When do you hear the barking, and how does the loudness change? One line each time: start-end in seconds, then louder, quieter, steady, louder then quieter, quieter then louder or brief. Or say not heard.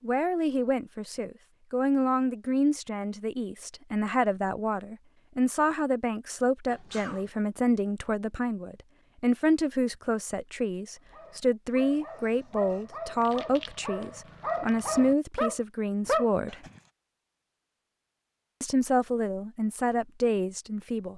10.8-16.7 louder.